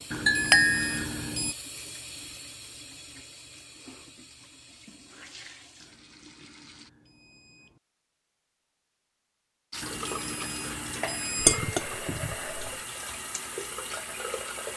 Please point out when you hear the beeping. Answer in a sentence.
You can hear the beeping from 0.1 to 1.6 s, from 5.8 to 7.8 s and from 9.8 to 11.6 s.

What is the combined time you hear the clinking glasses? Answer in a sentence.
You can hear the clinking glasses for 2 seconds altogether.